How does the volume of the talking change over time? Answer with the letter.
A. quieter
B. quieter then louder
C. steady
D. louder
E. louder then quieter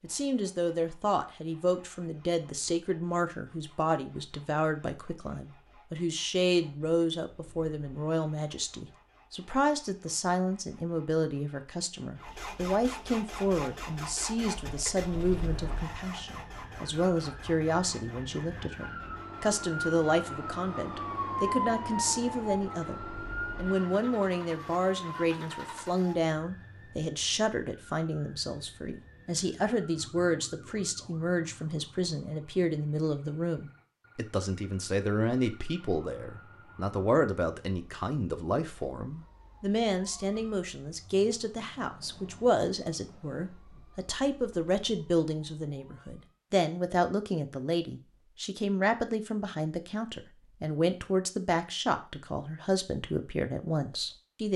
C.